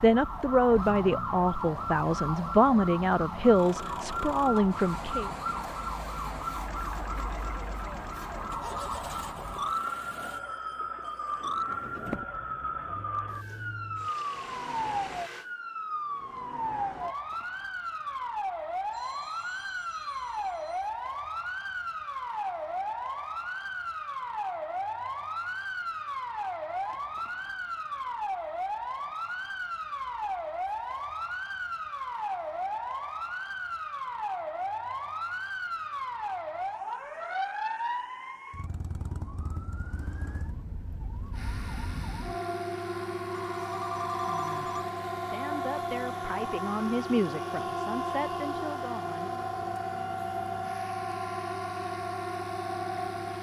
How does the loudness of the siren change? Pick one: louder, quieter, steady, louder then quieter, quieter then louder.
steady.